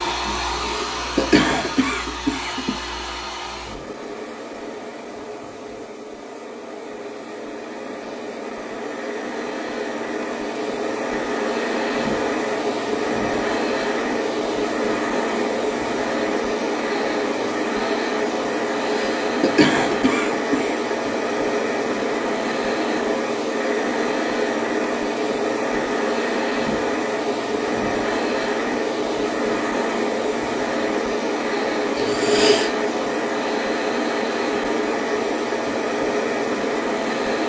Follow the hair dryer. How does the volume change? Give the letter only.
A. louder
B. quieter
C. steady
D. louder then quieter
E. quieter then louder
A.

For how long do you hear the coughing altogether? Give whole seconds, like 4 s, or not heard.
5 s.